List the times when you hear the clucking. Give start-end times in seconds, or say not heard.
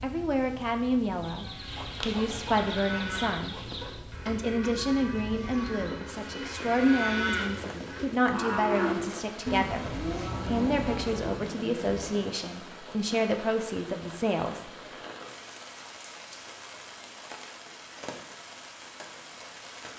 1.2-4.0.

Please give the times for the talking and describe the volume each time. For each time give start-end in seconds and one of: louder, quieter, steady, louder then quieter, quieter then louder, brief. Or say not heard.
0.0-14.7 steady.